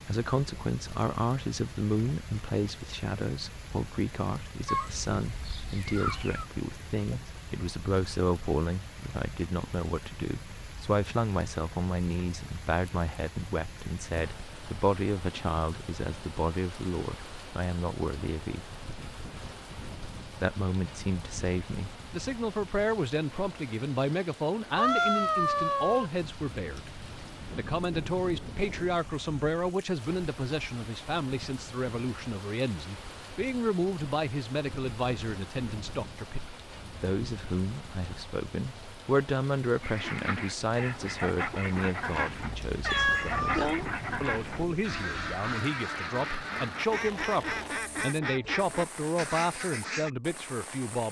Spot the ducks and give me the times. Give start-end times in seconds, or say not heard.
39.8-50.1.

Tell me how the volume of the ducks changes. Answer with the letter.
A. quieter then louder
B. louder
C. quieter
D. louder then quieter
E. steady
E.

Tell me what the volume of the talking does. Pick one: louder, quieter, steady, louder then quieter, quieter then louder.
steady.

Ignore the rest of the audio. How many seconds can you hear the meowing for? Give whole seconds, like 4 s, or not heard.
4 s.